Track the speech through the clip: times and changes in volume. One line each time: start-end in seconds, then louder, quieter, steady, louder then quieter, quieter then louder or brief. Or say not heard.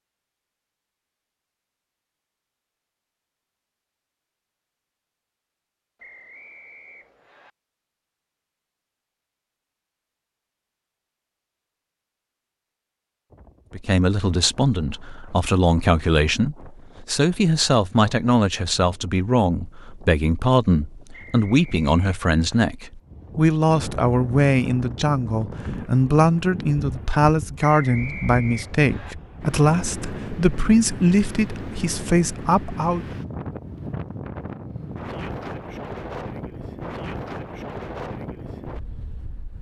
13.8-33.0 steady.